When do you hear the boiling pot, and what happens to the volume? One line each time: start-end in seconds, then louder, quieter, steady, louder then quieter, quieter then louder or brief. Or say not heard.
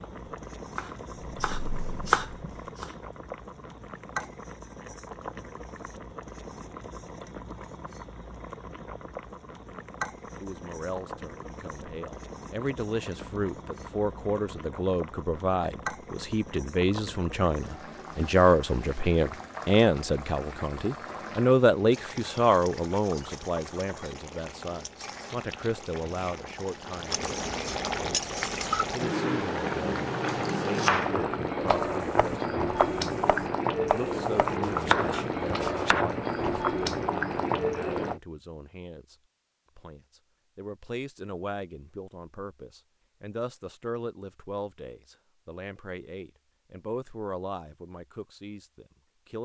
0.0-38.2 louder.